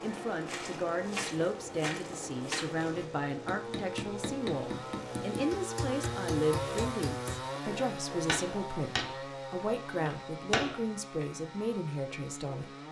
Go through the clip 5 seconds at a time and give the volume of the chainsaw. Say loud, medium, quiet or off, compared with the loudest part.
medium, loud, medium.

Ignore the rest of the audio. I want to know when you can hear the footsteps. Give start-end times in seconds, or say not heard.
0.0-3.0.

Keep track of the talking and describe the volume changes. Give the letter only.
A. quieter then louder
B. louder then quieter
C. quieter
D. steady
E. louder
D.